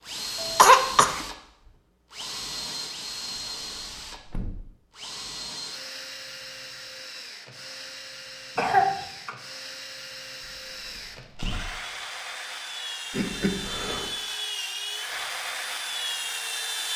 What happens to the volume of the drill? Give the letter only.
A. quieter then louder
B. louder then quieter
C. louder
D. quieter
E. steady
A.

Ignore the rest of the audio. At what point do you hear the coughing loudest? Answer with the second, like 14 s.
1 s.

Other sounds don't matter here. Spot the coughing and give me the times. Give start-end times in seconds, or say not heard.
0.4-1.2, 8.6-9.3, 13.1-14.1.